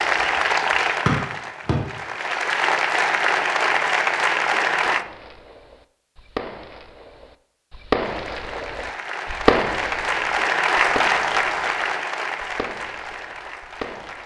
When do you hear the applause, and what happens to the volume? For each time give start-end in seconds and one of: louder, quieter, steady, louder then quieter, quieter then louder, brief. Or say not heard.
0.0-5.0 quieter then louder
8.0-14.2 louder then quieter.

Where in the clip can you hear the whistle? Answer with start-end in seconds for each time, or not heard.
1.1-1.8.